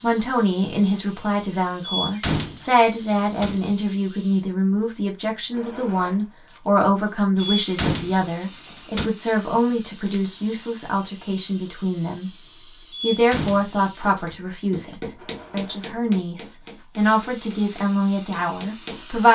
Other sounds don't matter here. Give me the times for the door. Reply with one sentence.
You can hear the door from 1.8 to 3.6 s, from 7.5 to 9.1 s and from 12.9 to 14.3 s.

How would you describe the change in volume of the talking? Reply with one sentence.
The loudness of the talking stays about the same.